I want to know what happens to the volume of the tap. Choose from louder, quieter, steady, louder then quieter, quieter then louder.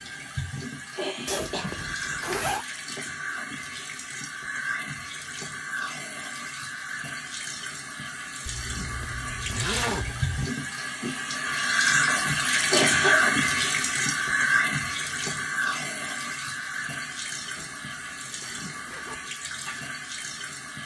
louder then quieter.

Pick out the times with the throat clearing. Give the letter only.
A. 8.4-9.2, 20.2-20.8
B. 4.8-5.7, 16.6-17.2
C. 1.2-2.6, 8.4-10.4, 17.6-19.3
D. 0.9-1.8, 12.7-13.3
D.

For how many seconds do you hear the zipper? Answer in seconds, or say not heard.
5 s.